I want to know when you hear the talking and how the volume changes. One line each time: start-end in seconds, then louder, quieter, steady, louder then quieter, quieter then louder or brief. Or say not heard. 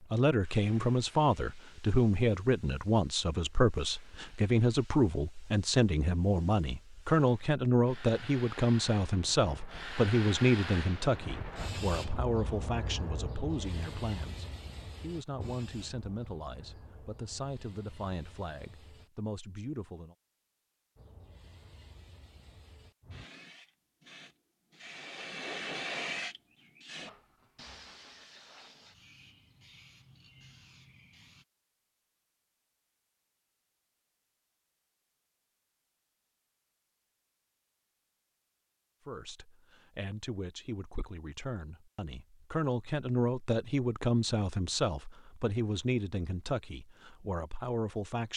0.0-20.1 quieter
39.0-48.3 louder then quieter.